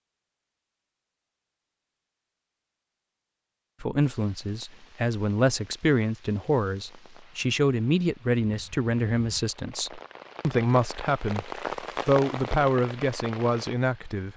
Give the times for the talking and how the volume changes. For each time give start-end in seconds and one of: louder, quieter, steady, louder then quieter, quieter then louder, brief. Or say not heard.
3.8-14.3 steady.